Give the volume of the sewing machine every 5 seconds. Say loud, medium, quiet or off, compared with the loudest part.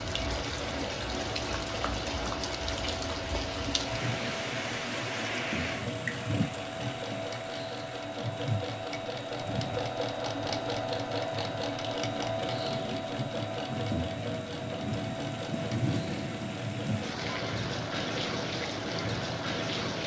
medium, loud, loud, medium.